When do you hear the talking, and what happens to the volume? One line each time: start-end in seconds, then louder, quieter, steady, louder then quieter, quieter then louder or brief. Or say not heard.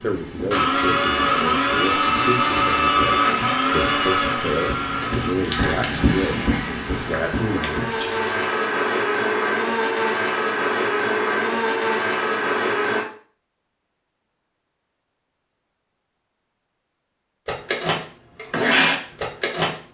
0.0-7.8 steady.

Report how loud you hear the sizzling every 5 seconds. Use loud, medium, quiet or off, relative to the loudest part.
medium, loud, off, off.